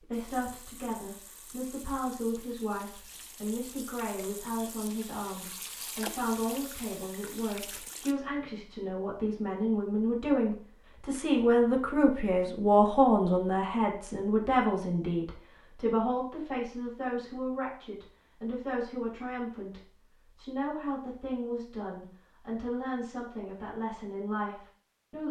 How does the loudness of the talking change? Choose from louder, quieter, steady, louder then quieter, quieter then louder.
louder then quieter.